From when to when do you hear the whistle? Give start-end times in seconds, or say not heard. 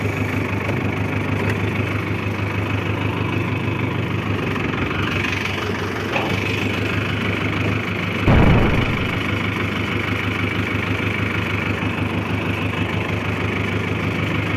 not heard.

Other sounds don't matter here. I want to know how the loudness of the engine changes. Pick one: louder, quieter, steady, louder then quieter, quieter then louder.
steady.